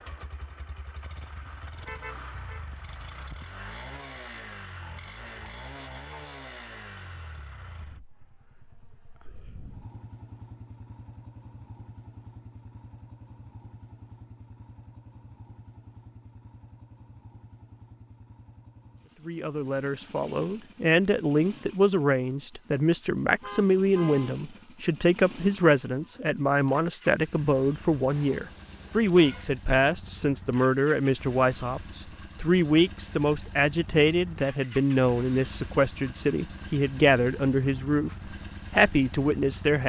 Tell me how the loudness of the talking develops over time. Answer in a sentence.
The volume of the talking stays about the same.